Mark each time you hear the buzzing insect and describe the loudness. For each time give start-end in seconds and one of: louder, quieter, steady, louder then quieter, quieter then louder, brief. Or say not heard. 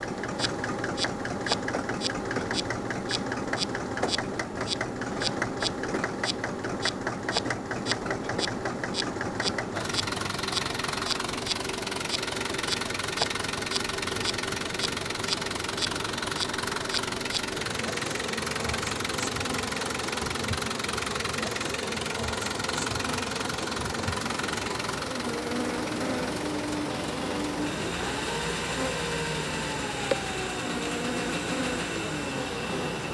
0.0-33.0 steady.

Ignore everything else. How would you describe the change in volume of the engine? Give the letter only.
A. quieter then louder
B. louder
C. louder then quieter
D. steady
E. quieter
D.